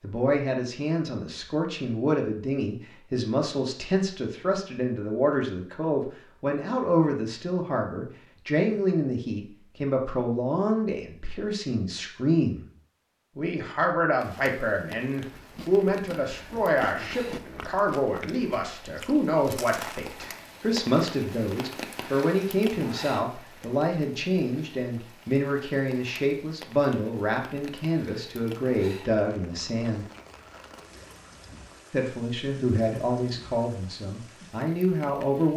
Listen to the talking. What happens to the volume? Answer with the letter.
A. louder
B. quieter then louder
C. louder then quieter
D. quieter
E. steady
E.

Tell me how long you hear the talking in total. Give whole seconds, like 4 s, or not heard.
33 s.